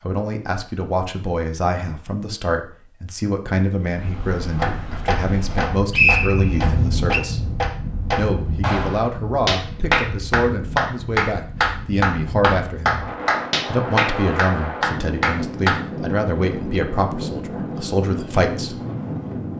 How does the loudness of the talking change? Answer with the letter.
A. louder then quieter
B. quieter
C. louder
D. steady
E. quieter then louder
D.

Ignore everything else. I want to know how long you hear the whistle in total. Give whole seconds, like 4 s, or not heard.
2 s.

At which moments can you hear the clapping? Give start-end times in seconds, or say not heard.
4.5-15.8.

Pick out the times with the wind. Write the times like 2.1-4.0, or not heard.
3.8-19.5.